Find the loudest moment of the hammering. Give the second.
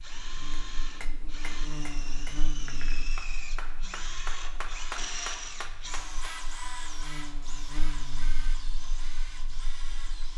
5 s.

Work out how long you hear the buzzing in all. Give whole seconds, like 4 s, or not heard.
10 s.